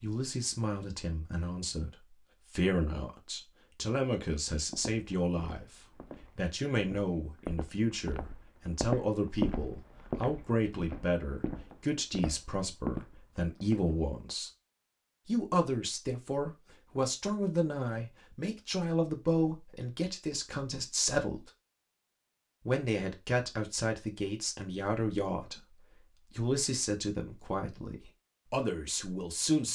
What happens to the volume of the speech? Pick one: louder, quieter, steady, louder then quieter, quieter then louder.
steady.